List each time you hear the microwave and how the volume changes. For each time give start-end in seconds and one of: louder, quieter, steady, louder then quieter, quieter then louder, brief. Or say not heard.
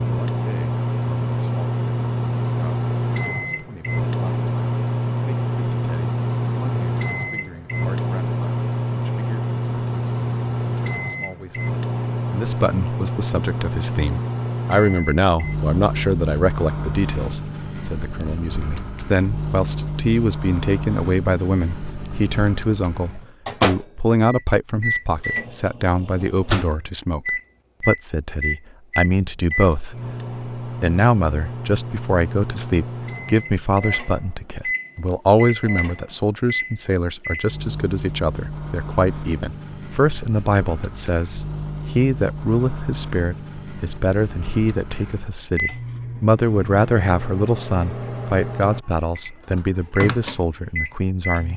0.0-51.5 quieter.